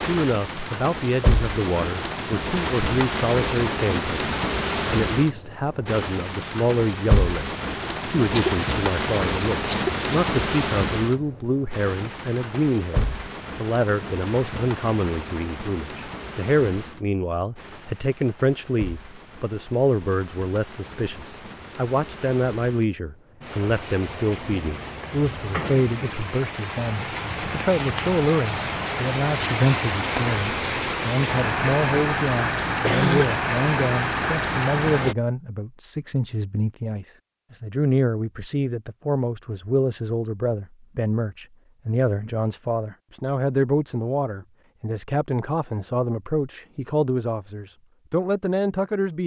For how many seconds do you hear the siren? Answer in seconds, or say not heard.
not heard.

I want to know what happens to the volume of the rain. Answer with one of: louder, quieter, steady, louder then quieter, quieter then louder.
quieter then louder.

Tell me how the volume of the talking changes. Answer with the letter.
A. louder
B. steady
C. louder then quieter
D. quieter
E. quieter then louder
B.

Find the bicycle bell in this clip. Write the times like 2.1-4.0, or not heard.
not heard.